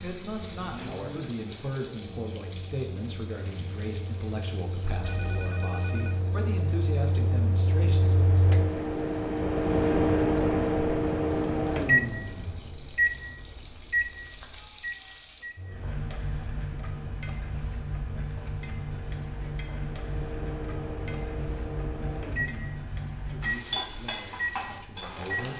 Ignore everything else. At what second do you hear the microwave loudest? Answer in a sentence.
The loudest moment of the microwave is at 10 seconds.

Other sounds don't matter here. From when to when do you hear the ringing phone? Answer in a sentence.
You can hear the ringing phone from 5.0 to 6.2 s.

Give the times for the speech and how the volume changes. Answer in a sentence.
You can hear the speech from 0.0 to 8.4 s, at a steady volume; and briefly from 23.2 to 25.5 s.